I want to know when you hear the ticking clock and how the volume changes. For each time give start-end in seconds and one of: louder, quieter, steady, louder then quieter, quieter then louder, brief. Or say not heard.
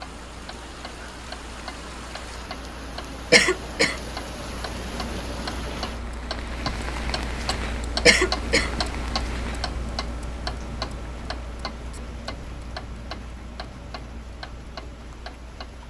0.0-15.8 louder then quieter.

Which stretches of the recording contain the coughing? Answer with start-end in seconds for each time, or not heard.
3.3-4.0, 8.1-8.7.